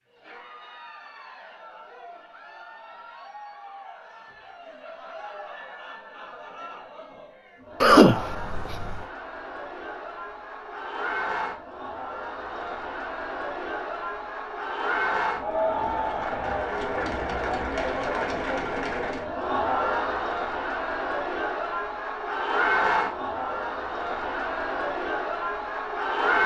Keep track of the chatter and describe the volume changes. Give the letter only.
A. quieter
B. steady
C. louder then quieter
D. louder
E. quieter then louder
D.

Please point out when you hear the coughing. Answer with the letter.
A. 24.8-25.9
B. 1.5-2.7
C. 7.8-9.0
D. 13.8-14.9
C.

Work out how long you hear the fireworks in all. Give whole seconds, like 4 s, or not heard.
not heard.